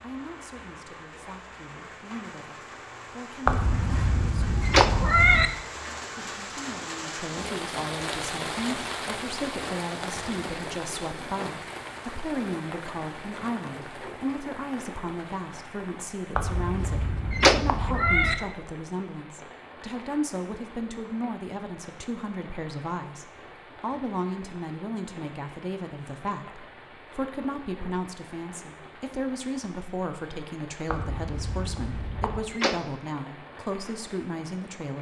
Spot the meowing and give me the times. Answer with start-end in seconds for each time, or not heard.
3.5-5.5, 16.4-18.4, 30.9-32.4.